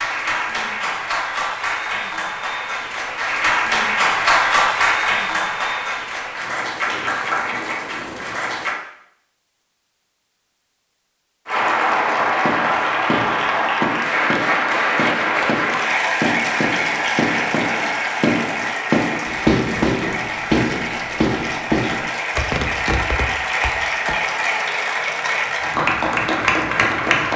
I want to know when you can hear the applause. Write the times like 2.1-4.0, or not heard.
0.0-8.8, 11.4-27.3.